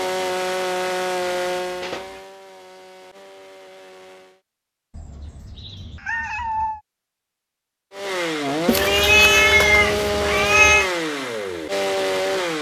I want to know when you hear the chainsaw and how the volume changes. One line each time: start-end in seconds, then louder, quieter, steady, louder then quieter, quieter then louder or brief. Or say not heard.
0.0-4.4 quieter
7.9-12.5 steady.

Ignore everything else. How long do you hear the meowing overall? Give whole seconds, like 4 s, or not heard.
5 s.